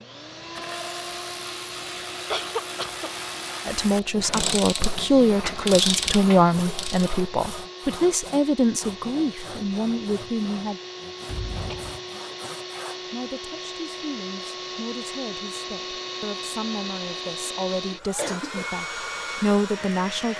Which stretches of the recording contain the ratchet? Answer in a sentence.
You can hear the ratchet from 0.3 to 7.2 s.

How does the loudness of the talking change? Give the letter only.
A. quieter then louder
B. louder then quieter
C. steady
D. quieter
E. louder
A.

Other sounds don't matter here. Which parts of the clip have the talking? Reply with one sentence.
You can hear the talking from 3.6 to 10.8 s and from 13.1 to 20.3 s.